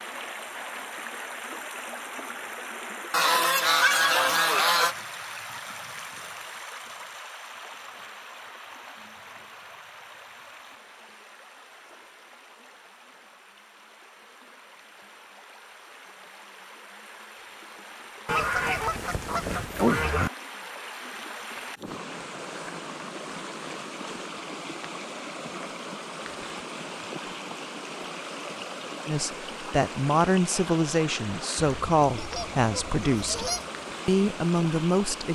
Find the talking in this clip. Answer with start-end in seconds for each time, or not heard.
29.1-35.2.